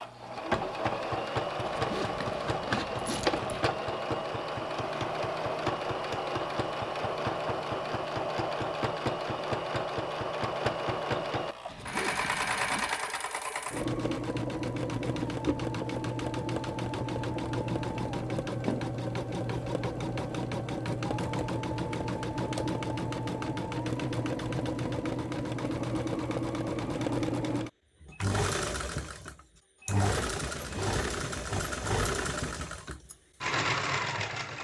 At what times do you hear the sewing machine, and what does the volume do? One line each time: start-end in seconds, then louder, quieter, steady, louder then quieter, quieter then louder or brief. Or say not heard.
0.0-34.5 steady.